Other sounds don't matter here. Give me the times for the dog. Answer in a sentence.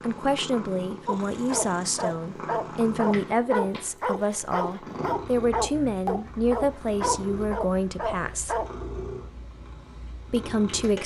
The dog can be heard from 1.1 to 8.7 s.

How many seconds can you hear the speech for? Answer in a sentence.
You can hear the speech for 9 seconds altogether.